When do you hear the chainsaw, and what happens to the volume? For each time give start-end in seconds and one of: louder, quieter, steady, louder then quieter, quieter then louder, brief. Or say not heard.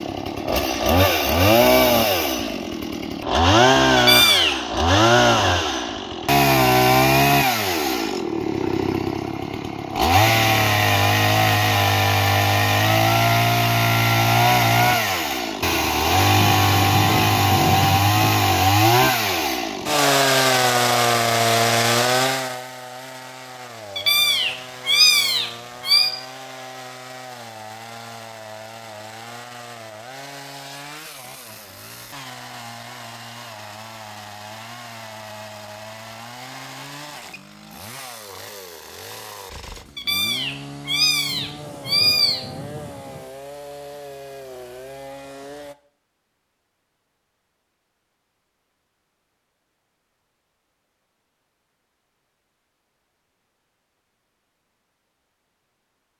0.0-45.8 quieter.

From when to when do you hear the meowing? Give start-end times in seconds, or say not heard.
4.0-4.5, 23.9-26.1, 40.0-42.4.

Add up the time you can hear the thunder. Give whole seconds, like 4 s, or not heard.
4 s.